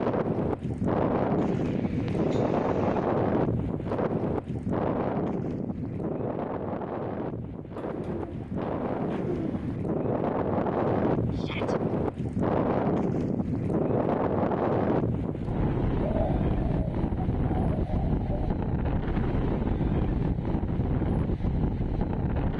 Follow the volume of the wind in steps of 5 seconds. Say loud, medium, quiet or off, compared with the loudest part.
loud, medium, loud, loud, loud.